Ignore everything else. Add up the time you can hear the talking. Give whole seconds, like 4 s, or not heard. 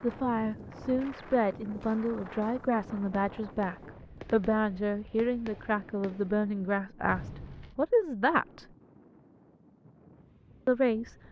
9 s.